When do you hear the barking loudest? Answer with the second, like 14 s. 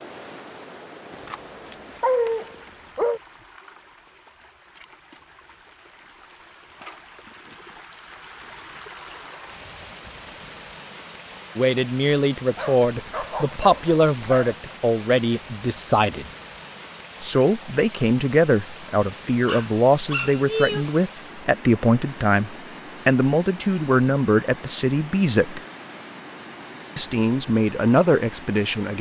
2 s.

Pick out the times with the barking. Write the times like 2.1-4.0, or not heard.
1.1-3.2, 12.6-14.6, 19.4-20.9.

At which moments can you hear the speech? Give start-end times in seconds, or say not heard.
11.6-16.2, 17.2-25.6, 26.9-28.9.